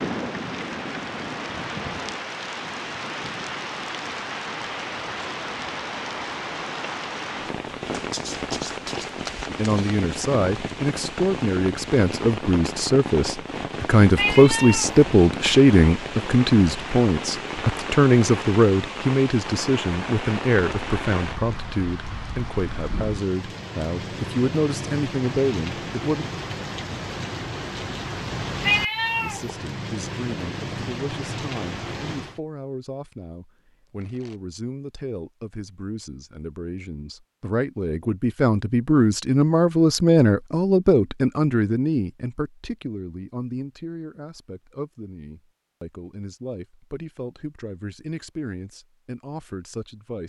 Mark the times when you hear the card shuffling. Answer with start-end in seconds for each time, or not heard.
7.9-9.9, 33.9-34.4.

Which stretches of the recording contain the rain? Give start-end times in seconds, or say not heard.
0.0-32.4.